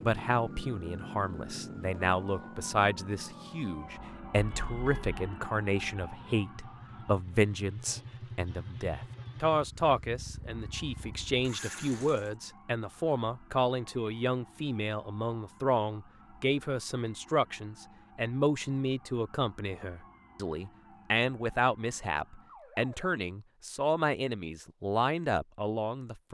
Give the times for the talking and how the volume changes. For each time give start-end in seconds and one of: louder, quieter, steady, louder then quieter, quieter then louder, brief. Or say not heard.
0.0-26.2 steady.